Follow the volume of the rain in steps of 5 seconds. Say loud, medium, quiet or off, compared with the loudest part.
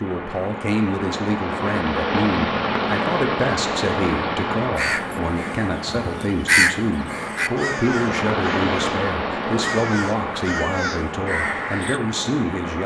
loud, loud, medium.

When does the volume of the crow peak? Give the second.
7 s.